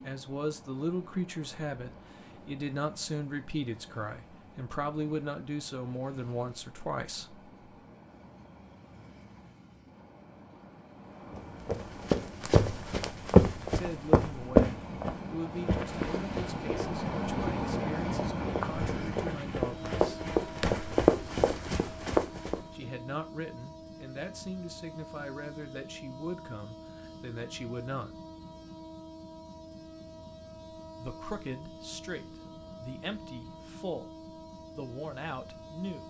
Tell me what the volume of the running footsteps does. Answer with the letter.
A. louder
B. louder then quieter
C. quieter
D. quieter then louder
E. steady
D.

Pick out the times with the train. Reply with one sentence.
You can hear the train from 0.0 to 36.0 s.